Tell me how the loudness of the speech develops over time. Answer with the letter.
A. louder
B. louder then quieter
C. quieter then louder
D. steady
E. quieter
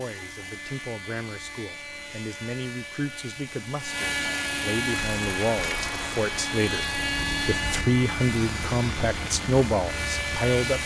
A.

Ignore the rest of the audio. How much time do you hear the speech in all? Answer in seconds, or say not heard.
11 s.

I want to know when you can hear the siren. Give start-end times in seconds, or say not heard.
not heard.